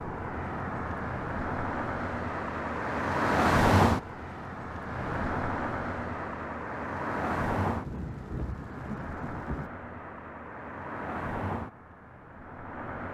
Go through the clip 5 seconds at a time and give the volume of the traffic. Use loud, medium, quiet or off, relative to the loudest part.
loud, medium, medium.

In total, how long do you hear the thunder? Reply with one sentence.
The thunder can be heard for 2 seconds in total.